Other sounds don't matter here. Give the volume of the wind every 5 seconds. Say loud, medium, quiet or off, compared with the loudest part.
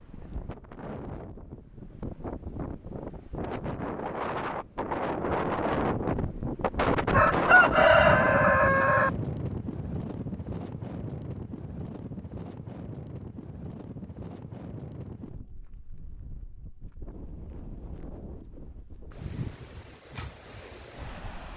medium, loud, medium, quiet, quiet.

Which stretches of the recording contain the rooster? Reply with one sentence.
You can hear the rooster from 7.1 to 9.1 s.